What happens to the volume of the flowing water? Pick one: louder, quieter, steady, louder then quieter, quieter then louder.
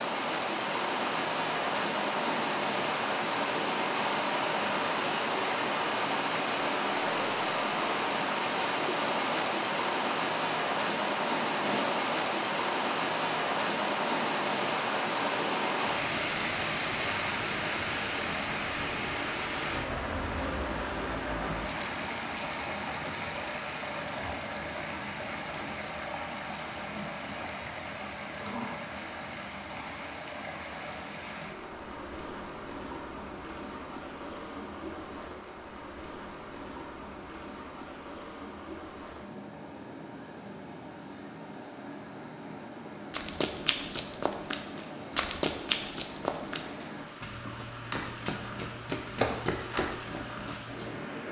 quieter.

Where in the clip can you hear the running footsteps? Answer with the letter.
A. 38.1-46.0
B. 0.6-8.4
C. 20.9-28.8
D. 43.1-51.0
D.